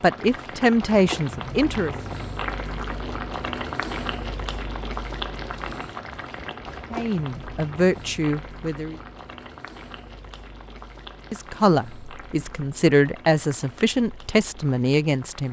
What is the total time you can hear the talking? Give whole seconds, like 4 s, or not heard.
8 s.